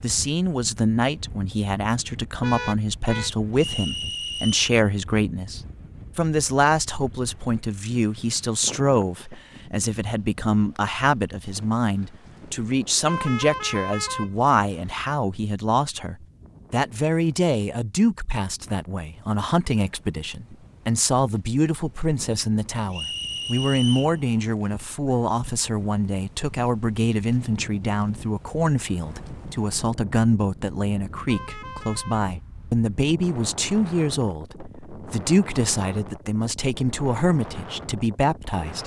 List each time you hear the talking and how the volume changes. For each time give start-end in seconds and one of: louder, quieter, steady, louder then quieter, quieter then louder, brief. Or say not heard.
0.0-38.8 steady.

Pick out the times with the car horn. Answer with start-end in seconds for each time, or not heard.
2.4-3.3, 13.1-15.1, 31.2-32.2.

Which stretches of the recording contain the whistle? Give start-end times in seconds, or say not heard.
3.5-4.7, 22.9-24.1.